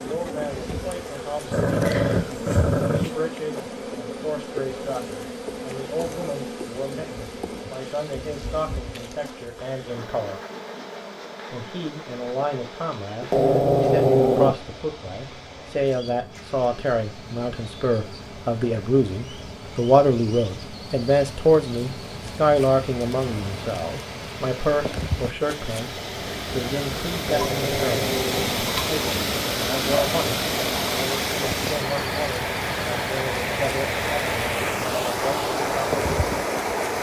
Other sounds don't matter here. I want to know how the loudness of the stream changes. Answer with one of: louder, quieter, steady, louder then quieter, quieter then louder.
louder.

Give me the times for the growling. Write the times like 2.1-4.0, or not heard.
1.5-3.1, 13.2-14.6, 27.1-29.1.